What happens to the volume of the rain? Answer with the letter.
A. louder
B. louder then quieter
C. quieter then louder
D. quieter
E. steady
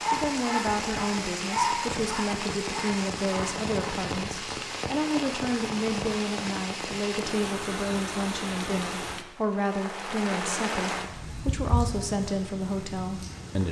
E.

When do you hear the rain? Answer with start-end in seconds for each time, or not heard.
0.0-13.6.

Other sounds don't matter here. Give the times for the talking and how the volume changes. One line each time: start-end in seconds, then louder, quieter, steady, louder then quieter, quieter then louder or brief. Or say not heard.
0.1-13.6 steady.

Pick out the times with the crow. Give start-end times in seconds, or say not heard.
not heard.